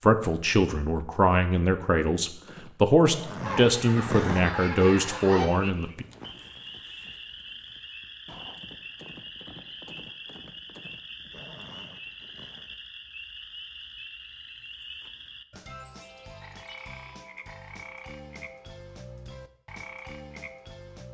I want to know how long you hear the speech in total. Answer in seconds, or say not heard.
6 s.